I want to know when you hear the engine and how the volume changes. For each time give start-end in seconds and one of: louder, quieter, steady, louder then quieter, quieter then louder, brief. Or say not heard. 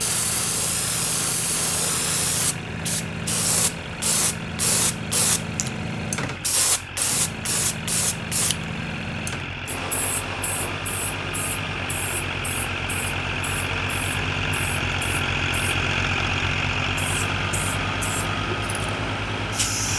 0.0-19.9 louder.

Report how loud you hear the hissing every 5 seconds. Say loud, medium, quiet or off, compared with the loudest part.
loud, loud, medium, medium.